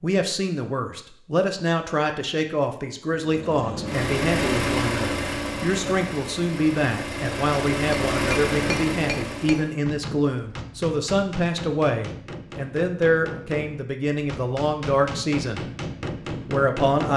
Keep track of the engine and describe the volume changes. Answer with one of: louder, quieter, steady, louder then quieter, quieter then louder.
quieter then louder.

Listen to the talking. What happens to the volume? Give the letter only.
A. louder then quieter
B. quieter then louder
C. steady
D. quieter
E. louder
C.